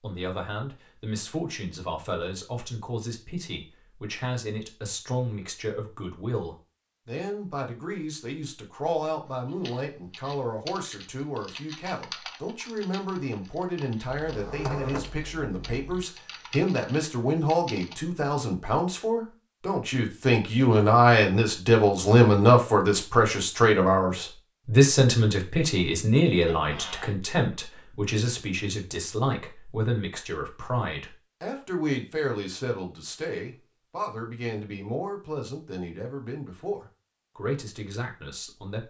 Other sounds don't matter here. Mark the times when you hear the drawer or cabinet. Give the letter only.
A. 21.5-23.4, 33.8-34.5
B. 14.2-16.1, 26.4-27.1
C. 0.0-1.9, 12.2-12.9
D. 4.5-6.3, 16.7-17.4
B.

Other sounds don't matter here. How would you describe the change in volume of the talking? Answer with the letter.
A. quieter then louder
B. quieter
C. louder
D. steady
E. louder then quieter
E.